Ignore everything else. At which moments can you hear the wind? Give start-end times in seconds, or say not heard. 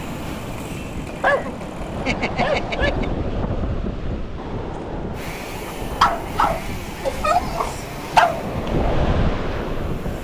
0.0-10.1.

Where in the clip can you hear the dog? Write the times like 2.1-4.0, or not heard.
1.1-3.0, 6.0-8.4.